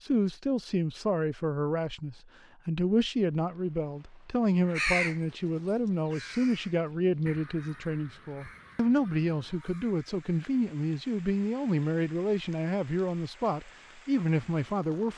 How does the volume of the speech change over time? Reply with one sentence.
The loudness of the speech stays about the same.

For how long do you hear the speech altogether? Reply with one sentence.
You can hear the speech for 15 seconds altogether.